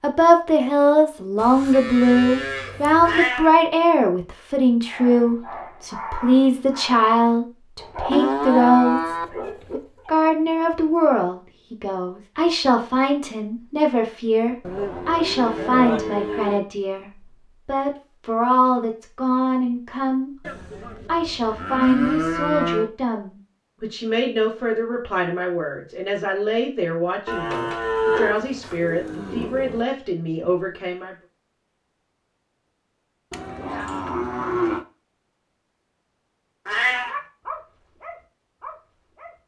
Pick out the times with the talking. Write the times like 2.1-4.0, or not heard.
0.0-20.3, 21.1-31.1.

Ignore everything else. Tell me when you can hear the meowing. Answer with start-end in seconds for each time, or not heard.
3.0-3.5, 36.6-37.1.